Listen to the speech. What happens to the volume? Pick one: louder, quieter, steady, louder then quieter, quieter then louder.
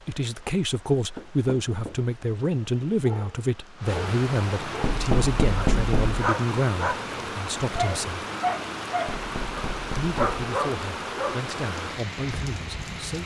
quieter.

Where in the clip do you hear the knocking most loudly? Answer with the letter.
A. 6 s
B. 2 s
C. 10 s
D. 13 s
A.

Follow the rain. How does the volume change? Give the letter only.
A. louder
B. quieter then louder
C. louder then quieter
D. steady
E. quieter
A.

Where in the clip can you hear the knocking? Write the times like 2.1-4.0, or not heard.
1.1-2.0, 4.8-6.3, 9.1-10.4.